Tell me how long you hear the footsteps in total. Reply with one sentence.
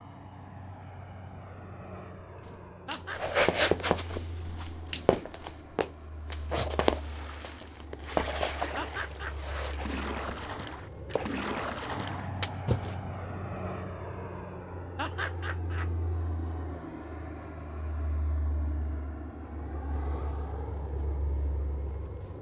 You can hear the footsteps for 8 seconds altogether.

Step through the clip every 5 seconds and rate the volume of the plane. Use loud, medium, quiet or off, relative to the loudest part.
medium, medium, loud, loud, loud.